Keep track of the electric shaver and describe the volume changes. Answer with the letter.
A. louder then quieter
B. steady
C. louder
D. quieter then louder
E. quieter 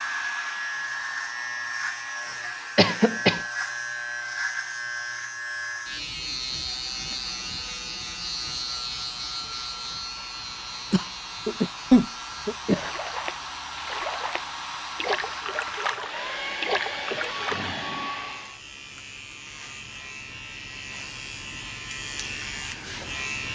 D.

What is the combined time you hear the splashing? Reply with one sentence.
You can hear the splashing for 5 seconds altogether.